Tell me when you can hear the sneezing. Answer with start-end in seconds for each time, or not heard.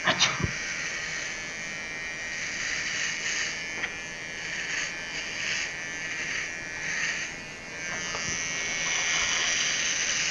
0.0-0.6, 7.8-8.4.